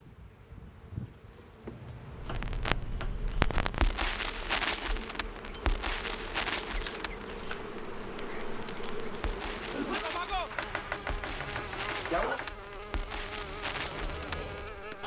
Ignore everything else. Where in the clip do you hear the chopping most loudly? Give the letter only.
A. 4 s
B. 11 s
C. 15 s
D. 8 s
B.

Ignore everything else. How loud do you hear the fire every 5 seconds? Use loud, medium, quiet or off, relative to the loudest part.
loud, medium, medium.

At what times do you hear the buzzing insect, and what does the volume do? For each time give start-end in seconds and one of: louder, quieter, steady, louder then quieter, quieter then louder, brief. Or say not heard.
0.0-15.0 louder.